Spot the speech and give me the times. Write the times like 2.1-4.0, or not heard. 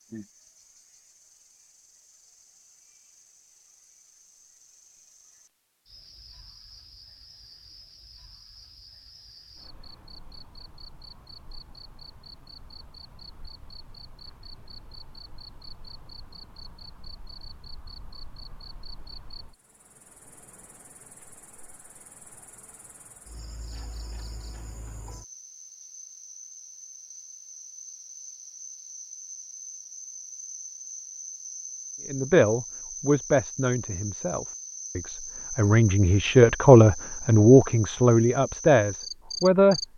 32.0-39.8.